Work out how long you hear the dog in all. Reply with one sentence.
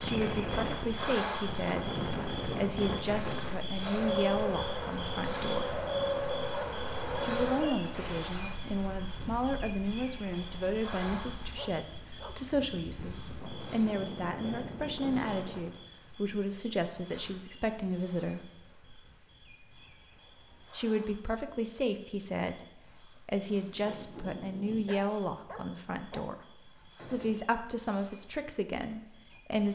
The dog can be heard for 5 seconds in total.